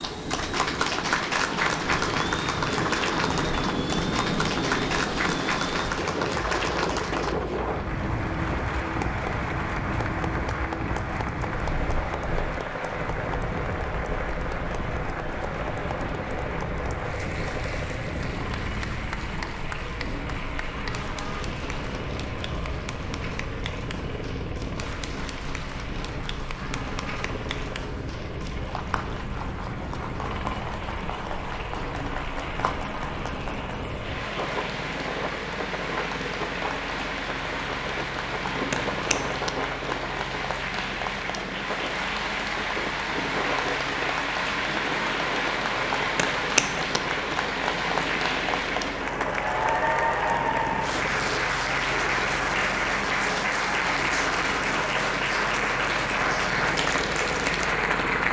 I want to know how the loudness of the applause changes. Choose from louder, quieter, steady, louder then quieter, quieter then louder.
quieter then louder.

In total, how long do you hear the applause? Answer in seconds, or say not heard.
58 s.